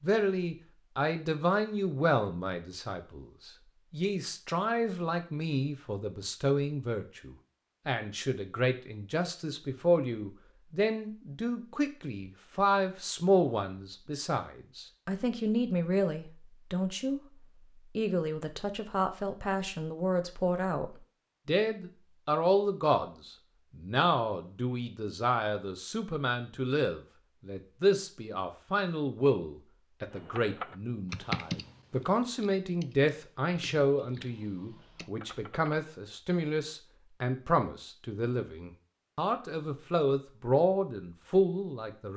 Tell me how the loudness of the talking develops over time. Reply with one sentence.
The volume of the talking stays about the same.